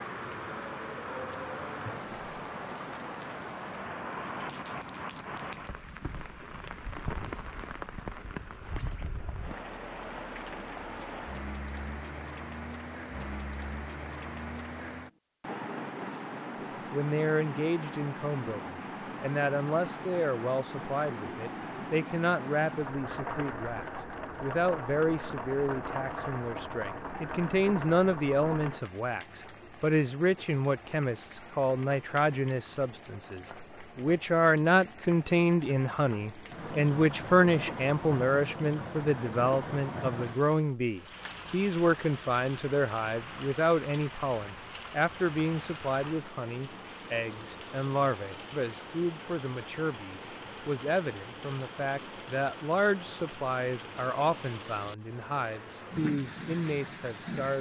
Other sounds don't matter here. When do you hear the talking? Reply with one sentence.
The talking can be heard from 16.9 to 57.5 s.